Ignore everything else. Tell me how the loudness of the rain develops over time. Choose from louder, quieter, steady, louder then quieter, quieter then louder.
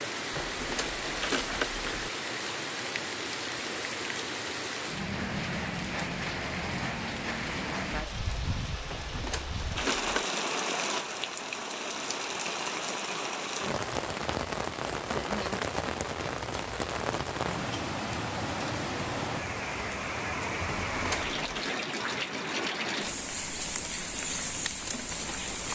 steady.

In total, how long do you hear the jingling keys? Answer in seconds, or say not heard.
4 s.